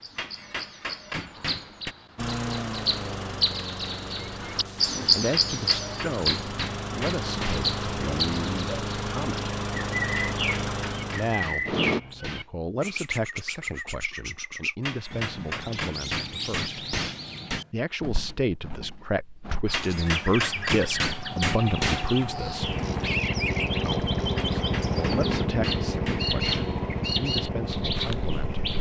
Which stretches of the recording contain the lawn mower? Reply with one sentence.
The lawn mower can be heard from 2.1 to 12.0 s and from 22.6 to 28.7 s.